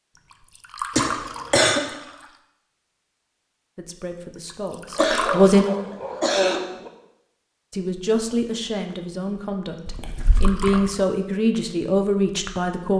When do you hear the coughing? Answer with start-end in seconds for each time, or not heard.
0.9-1.8, 5.0-6.6, 9.8-10.9.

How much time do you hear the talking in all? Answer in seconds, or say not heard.
7 s.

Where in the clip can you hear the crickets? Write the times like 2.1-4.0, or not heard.
not heard.